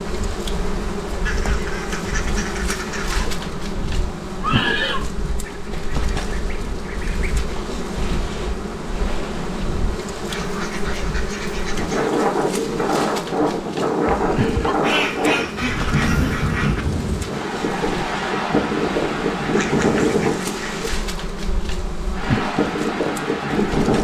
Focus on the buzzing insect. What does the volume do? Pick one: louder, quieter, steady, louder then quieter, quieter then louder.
steady.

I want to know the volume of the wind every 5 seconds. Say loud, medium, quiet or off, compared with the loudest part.
quiet, quiet, loud, loud, loud.